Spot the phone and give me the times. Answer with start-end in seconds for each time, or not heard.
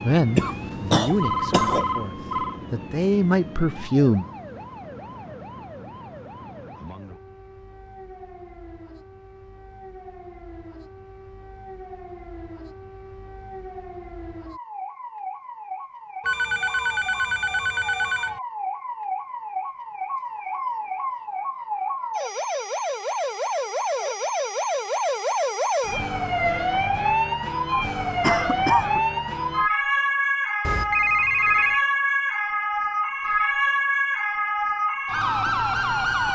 1.0-2.6, 16.2-18.4, 30.6-31.9.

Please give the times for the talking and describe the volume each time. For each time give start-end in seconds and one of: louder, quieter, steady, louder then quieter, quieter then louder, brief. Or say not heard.
0.0-4.2 quieter then louder.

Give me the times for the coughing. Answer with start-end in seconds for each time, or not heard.
0.3-1.9, 28.2-29.0.